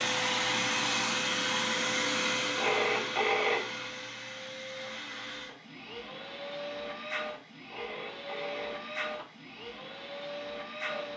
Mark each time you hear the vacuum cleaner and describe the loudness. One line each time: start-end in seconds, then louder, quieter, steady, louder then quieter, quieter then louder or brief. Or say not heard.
0.0-11.1 quieter.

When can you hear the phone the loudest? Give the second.
3 s.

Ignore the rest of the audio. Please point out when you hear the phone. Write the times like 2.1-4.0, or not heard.
2.5-3.6, 7.7-9.2.